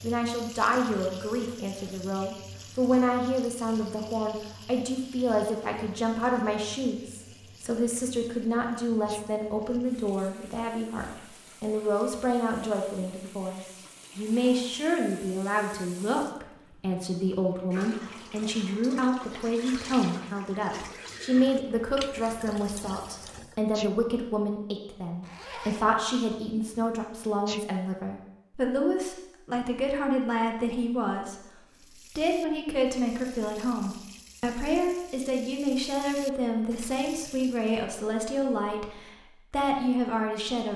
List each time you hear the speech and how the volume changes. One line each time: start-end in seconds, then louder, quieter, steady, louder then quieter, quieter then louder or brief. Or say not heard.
0.0-40.7 steady.